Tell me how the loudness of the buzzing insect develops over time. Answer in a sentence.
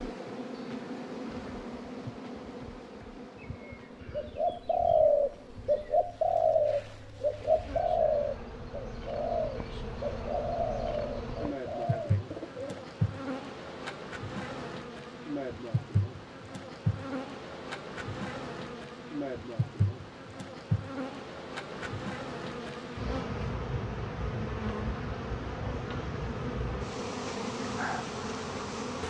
The volume of the buzzing insect goes up.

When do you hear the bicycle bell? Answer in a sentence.
You can't hear the bicycle bell here.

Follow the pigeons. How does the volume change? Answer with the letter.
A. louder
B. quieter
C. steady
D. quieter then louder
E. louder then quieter
B.